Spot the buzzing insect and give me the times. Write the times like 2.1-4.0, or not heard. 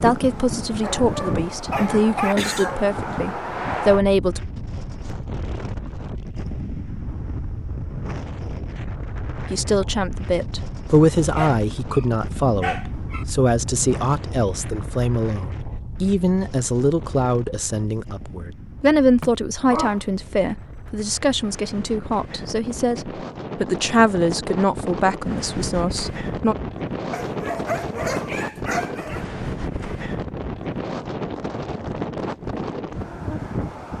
not heard.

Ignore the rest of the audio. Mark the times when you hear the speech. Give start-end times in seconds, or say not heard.
0.0-4.4, 9.5-26.6.